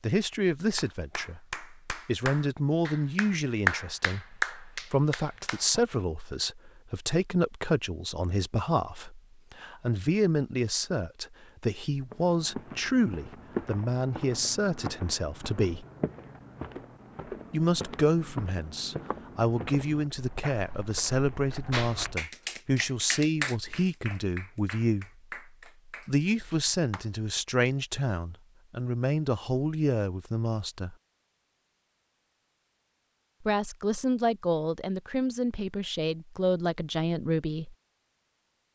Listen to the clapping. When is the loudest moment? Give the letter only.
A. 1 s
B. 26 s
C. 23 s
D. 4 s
D.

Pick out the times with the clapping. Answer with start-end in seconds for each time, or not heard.
0.2-5.8, 21.7-27.2.